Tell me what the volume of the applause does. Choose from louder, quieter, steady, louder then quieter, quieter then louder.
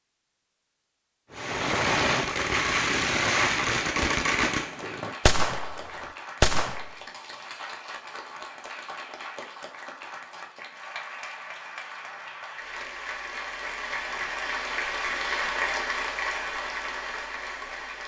louder.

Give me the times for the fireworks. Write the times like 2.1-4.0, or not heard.
1.3-7.0.